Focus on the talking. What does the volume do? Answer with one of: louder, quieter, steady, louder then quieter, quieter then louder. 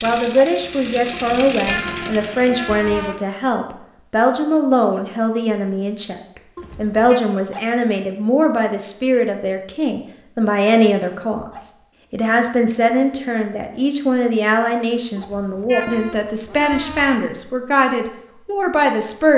steady.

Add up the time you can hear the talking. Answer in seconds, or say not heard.
19 s.